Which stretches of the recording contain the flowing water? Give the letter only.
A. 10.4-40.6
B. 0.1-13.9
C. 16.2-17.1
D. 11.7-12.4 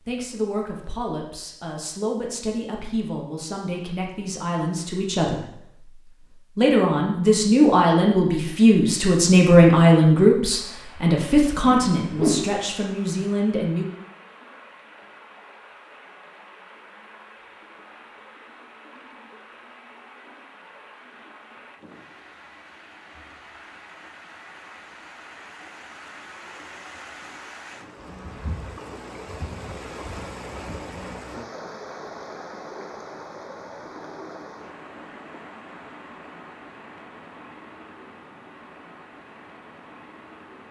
A.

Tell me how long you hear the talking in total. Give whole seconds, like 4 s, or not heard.
14 s.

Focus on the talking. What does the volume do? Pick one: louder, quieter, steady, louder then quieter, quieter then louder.
louder then quieter.